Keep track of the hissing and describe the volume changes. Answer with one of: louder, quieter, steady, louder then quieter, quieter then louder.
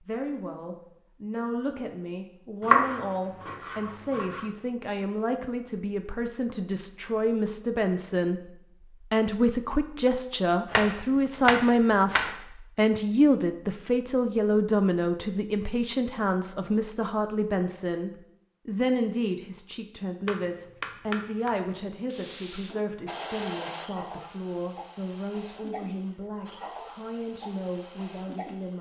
quieter.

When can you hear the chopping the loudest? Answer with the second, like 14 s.
3 s.